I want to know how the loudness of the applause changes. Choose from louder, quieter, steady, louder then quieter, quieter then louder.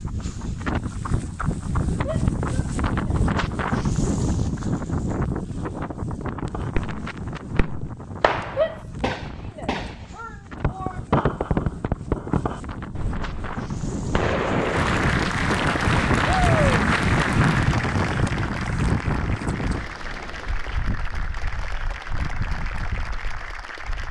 quieter.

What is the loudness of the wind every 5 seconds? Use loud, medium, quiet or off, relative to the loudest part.
loud, medium, medium, loud, quiet.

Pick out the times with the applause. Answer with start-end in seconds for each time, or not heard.
14.6-24.0.